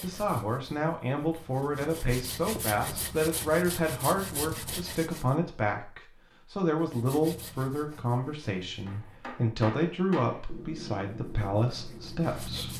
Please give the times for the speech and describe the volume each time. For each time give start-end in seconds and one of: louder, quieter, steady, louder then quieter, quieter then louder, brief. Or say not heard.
0.0-12.7 steady.